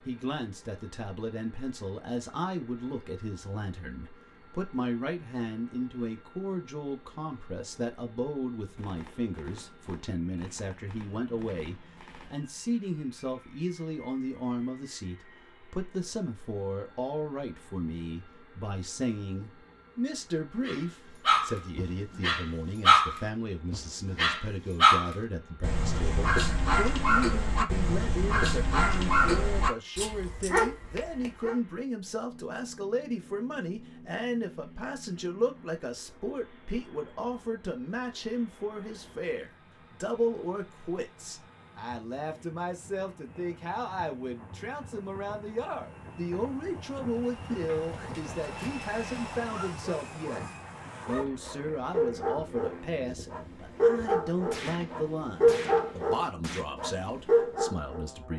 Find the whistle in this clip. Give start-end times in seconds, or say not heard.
not heard.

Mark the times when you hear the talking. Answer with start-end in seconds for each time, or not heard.
0.1-50.5, 51.0-58.3.